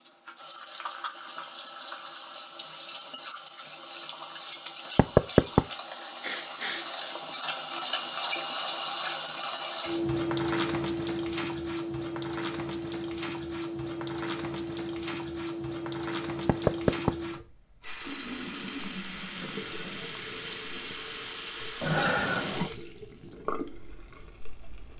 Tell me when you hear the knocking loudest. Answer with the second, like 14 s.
5 s.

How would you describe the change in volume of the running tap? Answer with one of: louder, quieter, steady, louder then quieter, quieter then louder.
louder then quieter.